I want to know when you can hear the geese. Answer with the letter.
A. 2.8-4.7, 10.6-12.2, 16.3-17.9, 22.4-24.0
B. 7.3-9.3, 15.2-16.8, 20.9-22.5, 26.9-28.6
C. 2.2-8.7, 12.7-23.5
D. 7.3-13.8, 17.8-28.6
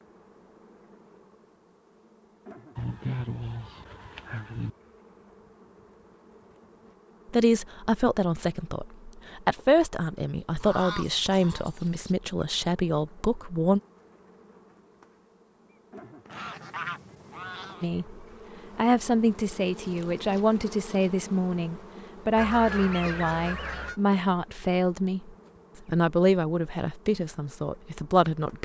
A.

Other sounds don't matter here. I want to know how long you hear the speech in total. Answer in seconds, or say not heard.
17 s.